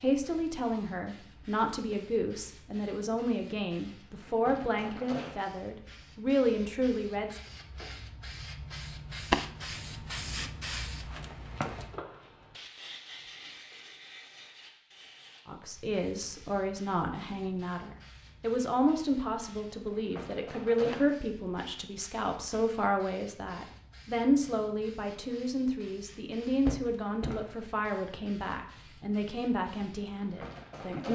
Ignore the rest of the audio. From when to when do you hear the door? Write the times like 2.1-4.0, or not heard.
26.6-27.5.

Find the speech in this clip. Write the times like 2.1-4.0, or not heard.
0.0-7.4, 15.4-31.0.